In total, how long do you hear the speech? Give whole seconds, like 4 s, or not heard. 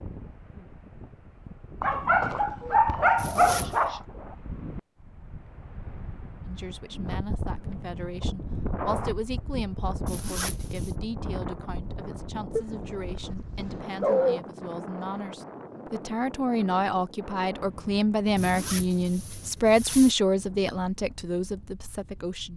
16 s.